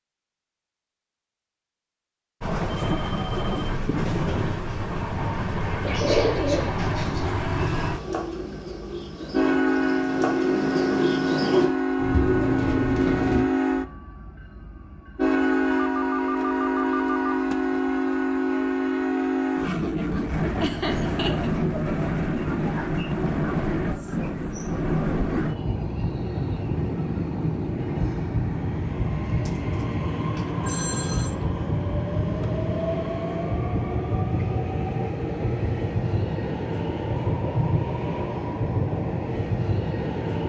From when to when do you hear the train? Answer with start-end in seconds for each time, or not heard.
2.4-40.4.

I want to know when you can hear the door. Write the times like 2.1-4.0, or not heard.
not heard.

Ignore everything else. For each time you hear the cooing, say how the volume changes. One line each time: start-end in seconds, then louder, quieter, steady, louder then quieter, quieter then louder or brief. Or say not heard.
5.8-13.4 quieter then louder.